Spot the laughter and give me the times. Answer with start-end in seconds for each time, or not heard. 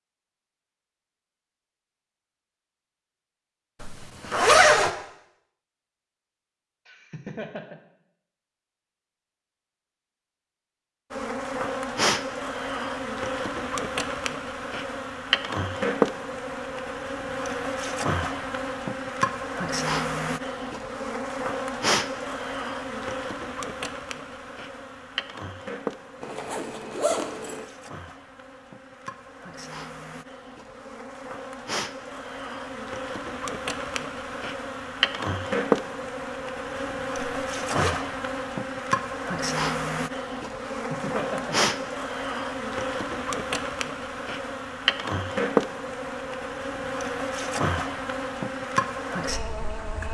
6.8-7.8, 40.8-41.7.